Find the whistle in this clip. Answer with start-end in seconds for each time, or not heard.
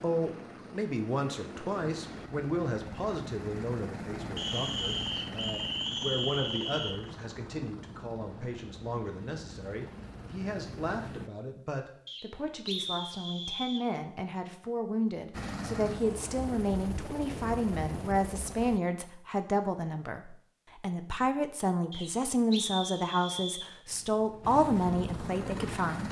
4.3-7.0, 12.1-13.8, 21.9-23.7.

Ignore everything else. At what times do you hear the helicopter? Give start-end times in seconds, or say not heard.
0.0-11.3, 15.3-18.8, 23.9-26.0.